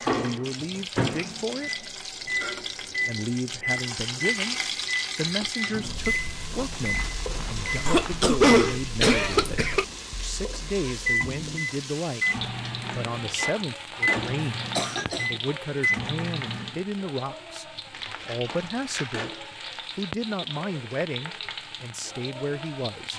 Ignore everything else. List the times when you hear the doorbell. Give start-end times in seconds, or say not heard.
not heard.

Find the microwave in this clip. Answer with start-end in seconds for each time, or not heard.
0.0-16.8.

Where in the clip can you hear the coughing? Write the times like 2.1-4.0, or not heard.
7.8-9.8, 14.8-15.2.